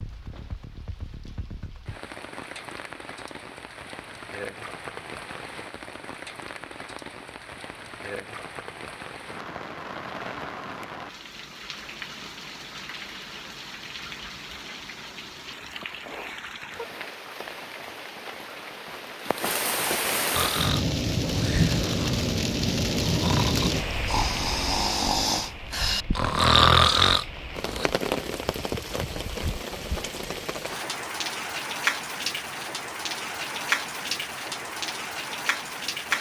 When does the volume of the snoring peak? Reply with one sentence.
The loudest moment of the snoring is at 27 seconds.